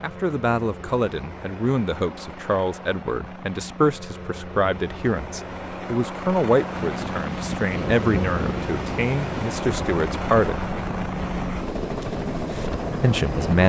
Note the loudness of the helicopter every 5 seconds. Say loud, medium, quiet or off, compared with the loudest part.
medium, loud, loud.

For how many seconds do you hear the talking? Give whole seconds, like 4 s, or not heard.
11 s.